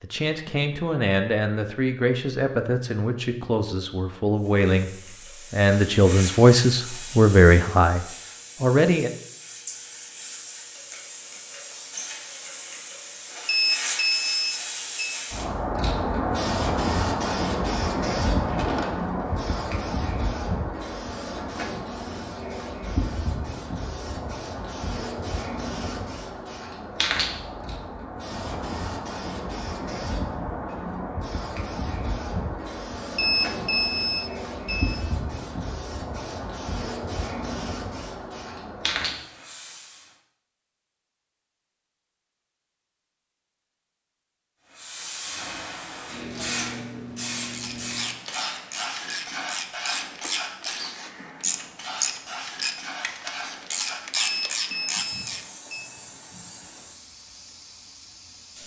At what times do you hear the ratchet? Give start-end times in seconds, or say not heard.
47.5-55.5.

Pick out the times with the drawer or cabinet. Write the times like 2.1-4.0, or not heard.
18.4-19.4.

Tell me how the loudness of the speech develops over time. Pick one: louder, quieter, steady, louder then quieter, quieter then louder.
louder.